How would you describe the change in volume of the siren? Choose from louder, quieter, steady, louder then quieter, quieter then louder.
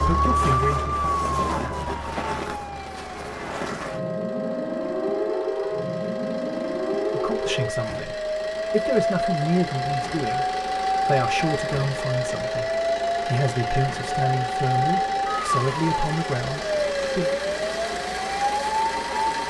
steady.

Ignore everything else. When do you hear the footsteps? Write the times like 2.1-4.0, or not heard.
not heard.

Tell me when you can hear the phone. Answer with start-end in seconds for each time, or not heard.
not heard.